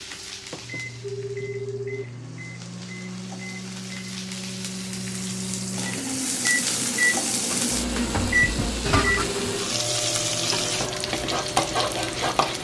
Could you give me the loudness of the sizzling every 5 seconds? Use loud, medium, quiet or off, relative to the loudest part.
quiet, loud, loud.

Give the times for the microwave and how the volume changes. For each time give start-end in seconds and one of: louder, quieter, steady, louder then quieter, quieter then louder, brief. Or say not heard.
0.0-12.5 louder then quieter.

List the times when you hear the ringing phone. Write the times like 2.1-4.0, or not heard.
1.0-2.0, 8.9-9.7.